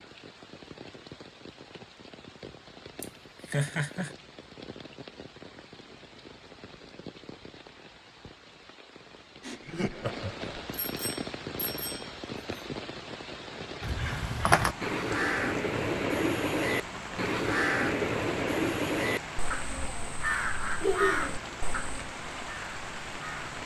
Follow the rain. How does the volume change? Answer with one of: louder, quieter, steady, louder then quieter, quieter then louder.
louder.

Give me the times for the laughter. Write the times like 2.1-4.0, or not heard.
3.0-4.1, 9.4-10.7, 20.8-21.4.